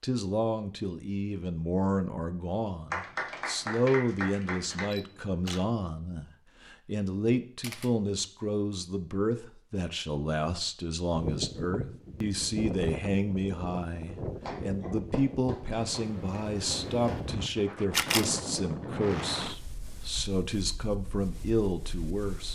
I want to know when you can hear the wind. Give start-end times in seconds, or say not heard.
11.2-22.4.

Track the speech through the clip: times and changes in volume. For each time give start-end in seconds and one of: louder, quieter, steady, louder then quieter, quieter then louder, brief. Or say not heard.
0.0-22.4 steady.